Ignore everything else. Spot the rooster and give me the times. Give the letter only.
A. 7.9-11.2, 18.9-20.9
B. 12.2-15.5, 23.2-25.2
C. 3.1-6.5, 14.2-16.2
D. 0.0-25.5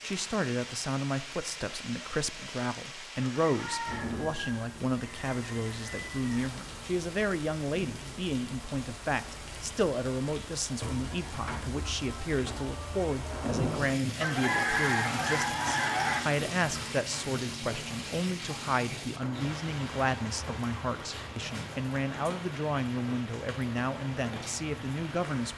C.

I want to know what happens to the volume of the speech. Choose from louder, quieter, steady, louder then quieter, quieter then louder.
steady.